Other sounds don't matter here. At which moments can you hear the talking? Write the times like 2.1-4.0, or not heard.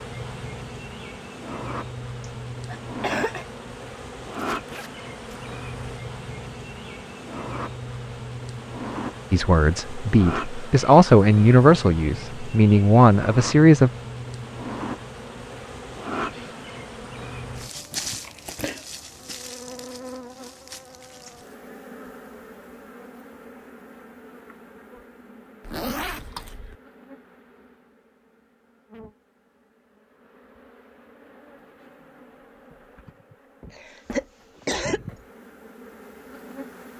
9.3-13.9.